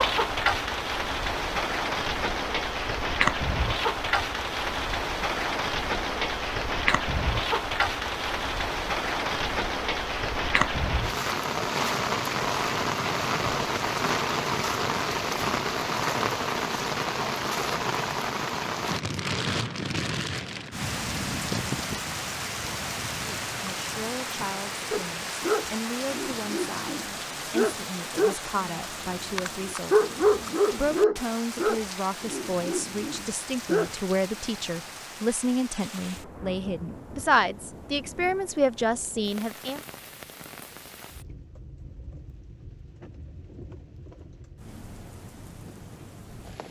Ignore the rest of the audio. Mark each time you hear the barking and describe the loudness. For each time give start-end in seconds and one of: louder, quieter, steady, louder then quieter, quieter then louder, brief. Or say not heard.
24.9-34.0 louder then quieter.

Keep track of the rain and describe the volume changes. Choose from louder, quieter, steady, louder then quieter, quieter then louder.
quieter.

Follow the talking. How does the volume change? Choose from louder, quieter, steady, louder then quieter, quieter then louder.
louder.